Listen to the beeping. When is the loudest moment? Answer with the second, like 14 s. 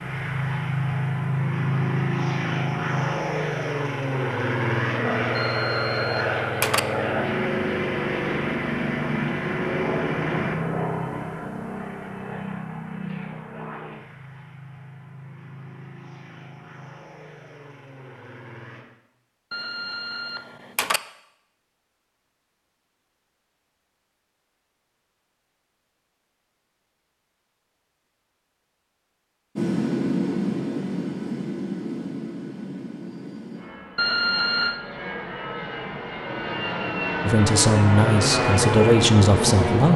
34 s.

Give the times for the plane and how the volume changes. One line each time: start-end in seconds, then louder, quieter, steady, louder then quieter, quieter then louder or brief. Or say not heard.
0.0-18.9 quieter
29.6-39.9 quieter then louder.